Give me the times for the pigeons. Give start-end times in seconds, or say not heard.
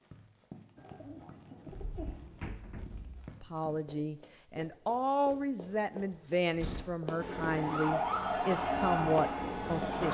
0.8-2.5.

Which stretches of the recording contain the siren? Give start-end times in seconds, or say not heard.
7.5-10.0.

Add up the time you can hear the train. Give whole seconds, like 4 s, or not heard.
3 s.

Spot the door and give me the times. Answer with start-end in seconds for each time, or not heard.
1.8-3.4, 6.1-7.0.